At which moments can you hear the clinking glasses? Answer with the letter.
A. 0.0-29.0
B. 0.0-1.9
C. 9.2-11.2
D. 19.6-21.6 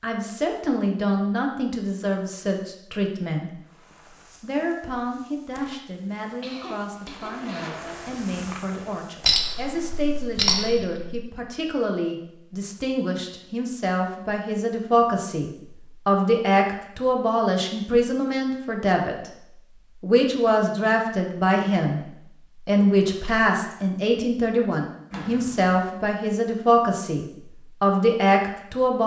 C.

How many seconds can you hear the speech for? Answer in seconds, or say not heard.
29 s.